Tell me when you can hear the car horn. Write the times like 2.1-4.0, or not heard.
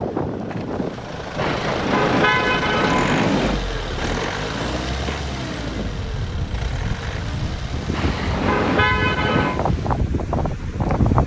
1.4-3.6, 7.9-9.6.